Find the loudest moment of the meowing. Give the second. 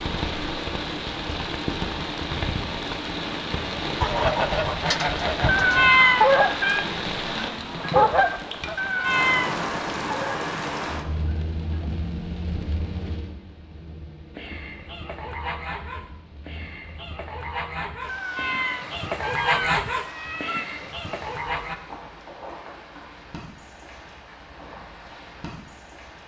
6 s.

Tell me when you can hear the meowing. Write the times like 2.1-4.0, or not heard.
5.5-6.8, 8.8-9.7, 18.1-20.6.